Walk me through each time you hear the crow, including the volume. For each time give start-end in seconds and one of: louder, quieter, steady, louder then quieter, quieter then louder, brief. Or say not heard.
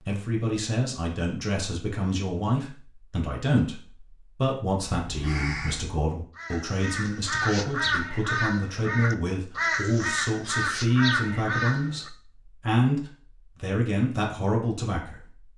5.0-12.1 louder.